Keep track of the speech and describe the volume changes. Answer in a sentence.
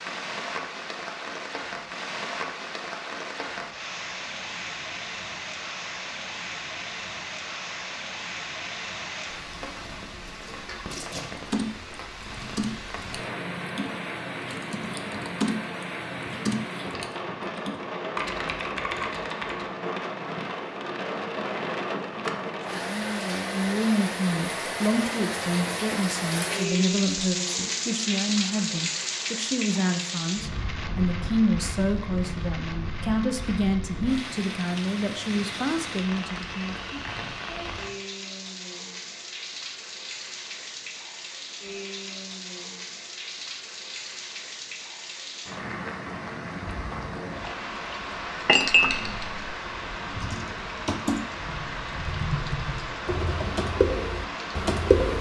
The volume of the speech stays about the same.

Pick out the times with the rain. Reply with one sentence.
The rain can be heard from 0.0 to 55.1 s.